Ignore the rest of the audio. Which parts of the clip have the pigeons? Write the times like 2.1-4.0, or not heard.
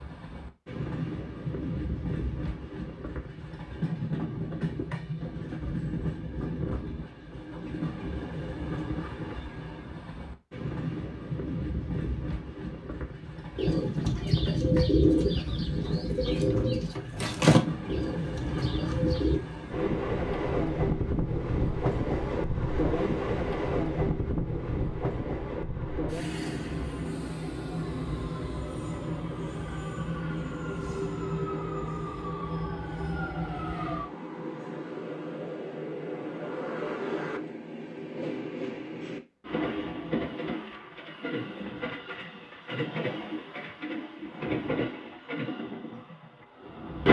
13.6-19.4.